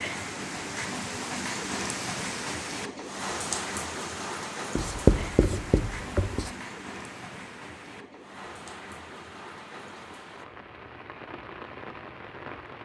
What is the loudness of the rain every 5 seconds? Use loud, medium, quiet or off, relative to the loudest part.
loud, medium, medium.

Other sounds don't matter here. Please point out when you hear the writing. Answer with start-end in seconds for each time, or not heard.
4.8-6.5.